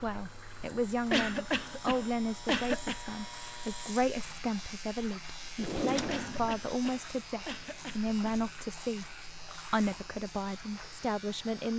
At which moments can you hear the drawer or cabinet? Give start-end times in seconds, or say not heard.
5.5-6.6.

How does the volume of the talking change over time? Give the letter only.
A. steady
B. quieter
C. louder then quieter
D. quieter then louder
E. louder
A.